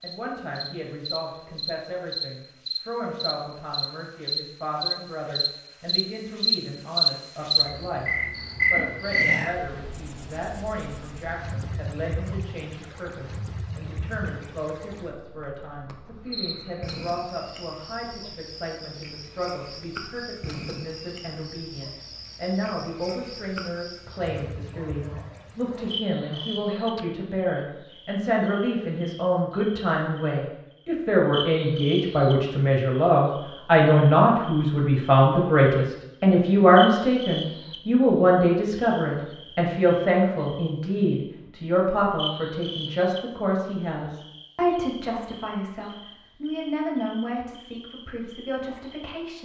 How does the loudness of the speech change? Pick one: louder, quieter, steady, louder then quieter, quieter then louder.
louder then quieter.